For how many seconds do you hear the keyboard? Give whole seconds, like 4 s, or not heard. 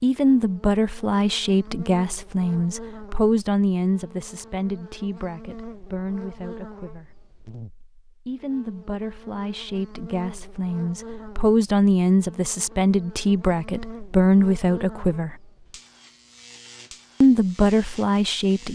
not heard.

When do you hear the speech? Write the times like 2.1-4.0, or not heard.
0.0-7.1, 8.2-15.3, 17.2-18.7.